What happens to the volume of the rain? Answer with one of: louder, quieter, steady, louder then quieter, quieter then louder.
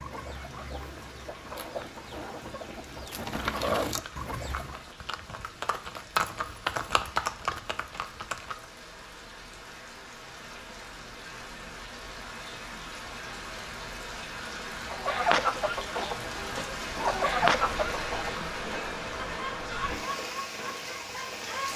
louder.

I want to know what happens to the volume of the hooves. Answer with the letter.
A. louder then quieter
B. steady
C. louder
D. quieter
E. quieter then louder
A.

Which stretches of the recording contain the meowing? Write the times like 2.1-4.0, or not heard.
not heard.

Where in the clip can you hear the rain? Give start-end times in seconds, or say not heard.
0.0-21.7.